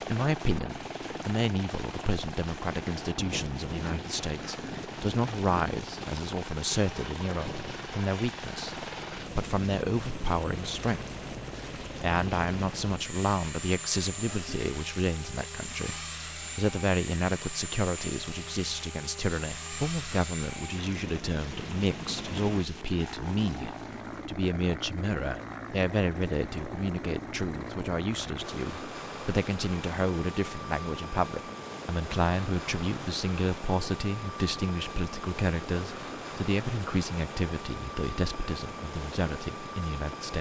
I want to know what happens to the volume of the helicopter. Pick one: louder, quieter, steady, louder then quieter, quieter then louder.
steady.